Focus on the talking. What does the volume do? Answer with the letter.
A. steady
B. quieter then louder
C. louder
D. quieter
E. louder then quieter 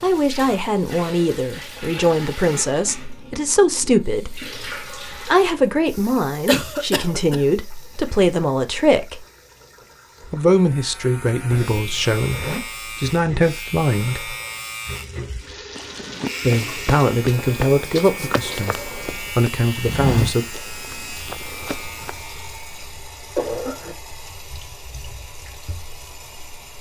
A.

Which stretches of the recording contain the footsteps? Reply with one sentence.
The footsteps can be heard from 15.8 to 22.2 s.